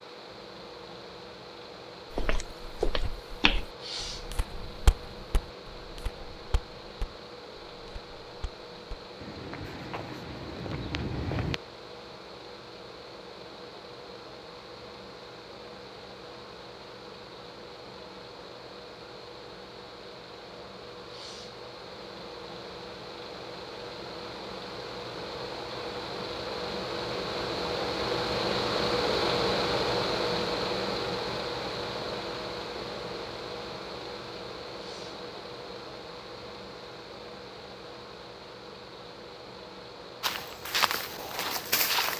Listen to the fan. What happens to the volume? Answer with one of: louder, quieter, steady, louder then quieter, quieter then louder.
louder then quieter.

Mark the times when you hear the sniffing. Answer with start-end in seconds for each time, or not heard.
3.8-4.3, 21.1-21.6, 34.8-35.2.